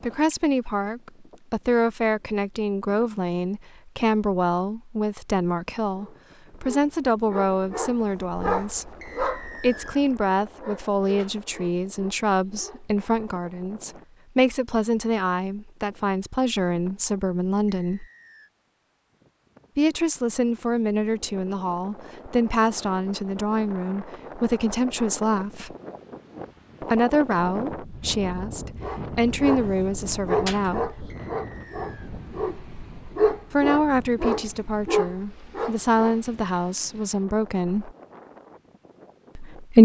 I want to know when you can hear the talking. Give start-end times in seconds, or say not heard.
0.0-18.1, 19.8-25.8, 26.8-31.1, 33.5-38.0, 39.4-39.8.